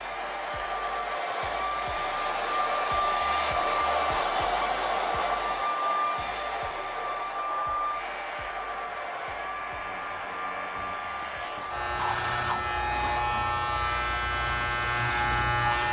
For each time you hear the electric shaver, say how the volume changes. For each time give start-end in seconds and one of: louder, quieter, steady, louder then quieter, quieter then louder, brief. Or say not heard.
7.9-15.8 louder.